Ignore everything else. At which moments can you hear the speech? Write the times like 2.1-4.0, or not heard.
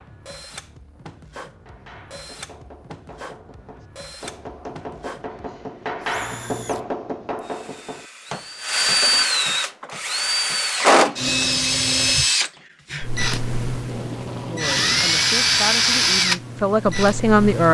14.4-17.7.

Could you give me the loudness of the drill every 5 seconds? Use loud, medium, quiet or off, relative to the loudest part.
quiet, medium, loud, loud.